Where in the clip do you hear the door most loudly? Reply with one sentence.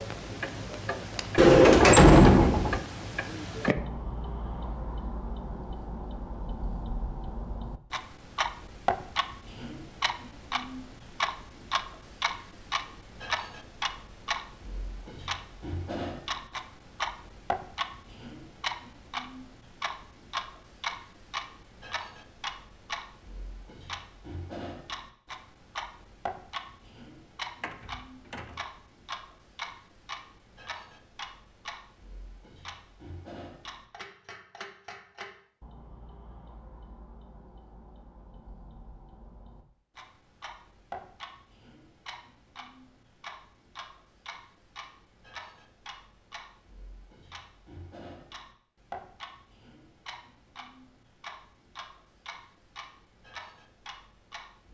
The volume of the door peaks at 2 seconds.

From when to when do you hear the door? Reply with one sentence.
The door can be heard from 1.4 to 2.8 s and from 27.6 to 28.6 s.